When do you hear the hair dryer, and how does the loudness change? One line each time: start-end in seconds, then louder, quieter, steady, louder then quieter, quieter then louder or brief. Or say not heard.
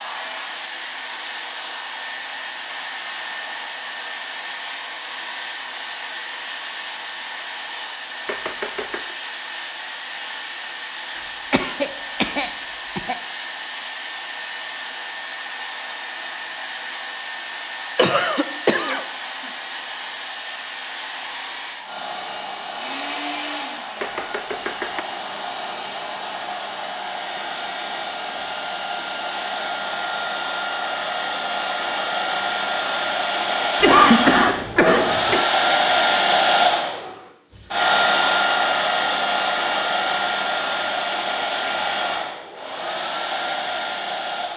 0.0-44.5 louder.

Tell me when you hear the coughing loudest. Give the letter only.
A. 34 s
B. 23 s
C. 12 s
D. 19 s
A.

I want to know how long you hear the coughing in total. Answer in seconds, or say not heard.
5 s.